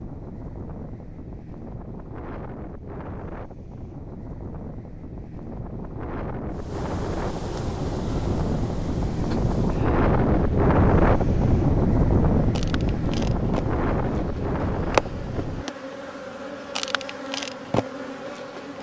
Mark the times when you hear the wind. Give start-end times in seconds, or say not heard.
0.0-15.7.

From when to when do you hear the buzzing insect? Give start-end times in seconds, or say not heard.
6.5-18.7.